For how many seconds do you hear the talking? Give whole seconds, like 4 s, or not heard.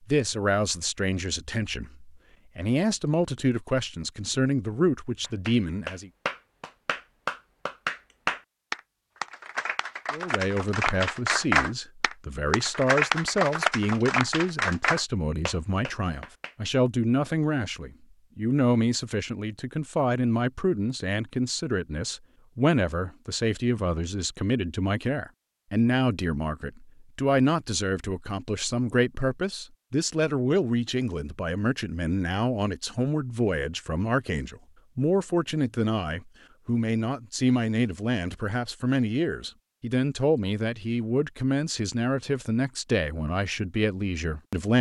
41 s.